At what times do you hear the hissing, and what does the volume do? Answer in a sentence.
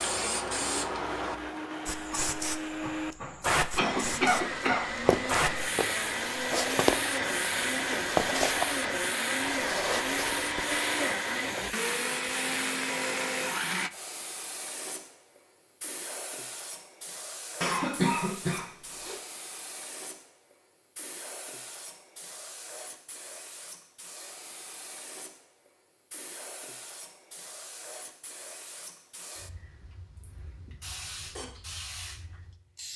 The hissing can be heard from 0.0 to 32.9 s, getting quieter.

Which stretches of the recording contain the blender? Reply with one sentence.
The blender can be heard from 0.0 to 13.9 s.